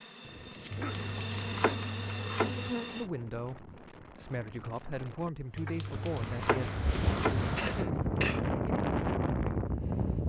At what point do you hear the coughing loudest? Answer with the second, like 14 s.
8 s.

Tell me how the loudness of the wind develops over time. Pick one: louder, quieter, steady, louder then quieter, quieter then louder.
louder.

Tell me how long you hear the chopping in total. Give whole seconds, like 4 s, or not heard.
4 s.